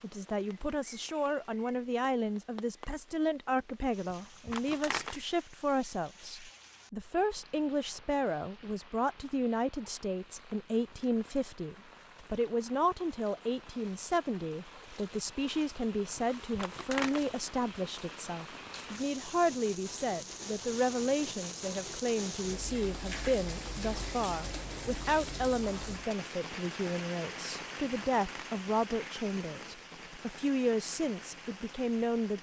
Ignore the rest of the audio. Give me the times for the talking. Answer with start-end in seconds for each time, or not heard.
0.0-32.3.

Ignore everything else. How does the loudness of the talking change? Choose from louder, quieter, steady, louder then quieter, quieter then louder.
steady.